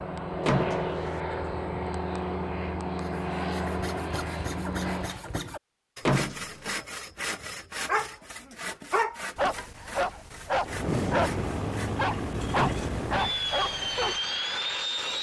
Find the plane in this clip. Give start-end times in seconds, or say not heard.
0.0-5.2, 10.6-15.1.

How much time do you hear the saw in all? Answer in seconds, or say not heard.
10 s.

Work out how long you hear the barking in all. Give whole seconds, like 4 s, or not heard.
6 s.